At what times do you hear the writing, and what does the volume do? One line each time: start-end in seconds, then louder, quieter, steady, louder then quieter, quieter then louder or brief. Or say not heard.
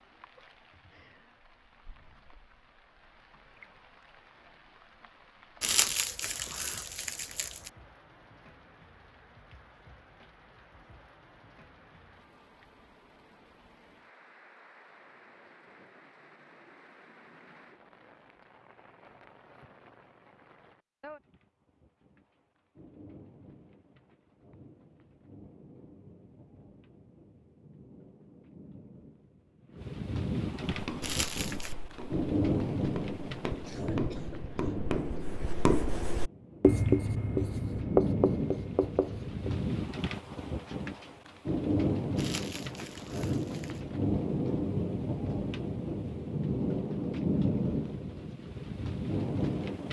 30.6-39.5 louder.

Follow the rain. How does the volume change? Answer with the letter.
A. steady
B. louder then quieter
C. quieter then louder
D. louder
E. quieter
D.